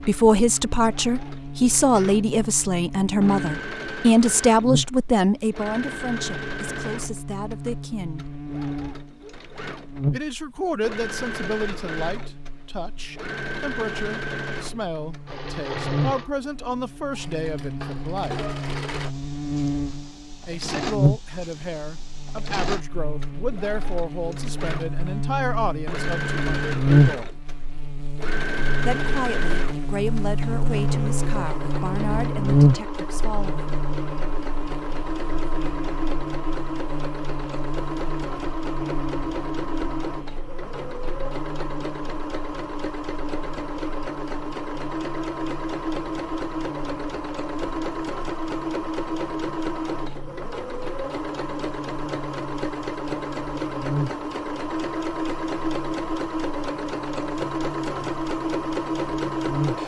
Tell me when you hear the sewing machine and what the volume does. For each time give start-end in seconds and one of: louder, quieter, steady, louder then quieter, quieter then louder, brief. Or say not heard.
0.0-59.8 louder.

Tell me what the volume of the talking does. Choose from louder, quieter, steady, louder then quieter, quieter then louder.
quieter.